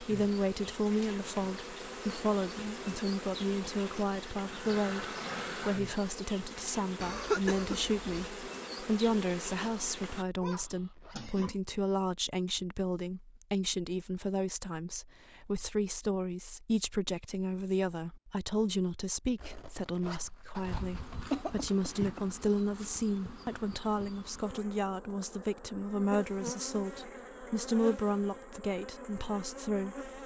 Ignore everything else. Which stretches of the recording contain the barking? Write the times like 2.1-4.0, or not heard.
not heard.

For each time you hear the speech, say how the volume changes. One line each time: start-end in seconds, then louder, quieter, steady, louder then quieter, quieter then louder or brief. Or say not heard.
0.0-30.1 steady.